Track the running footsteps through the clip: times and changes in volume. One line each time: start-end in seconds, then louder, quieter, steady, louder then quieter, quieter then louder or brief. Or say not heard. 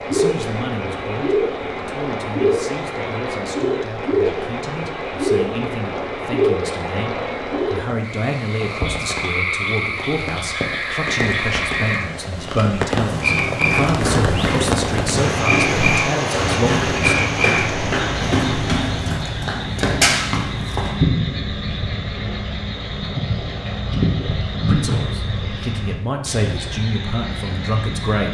12.9-21.0 steady.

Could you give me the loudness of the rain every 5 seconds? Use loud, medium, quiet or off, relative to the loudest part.
medium, medium, loud, loud, off, off.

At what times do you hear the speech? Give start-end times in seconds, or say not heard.
0.0-17.2, 24.6-28.3.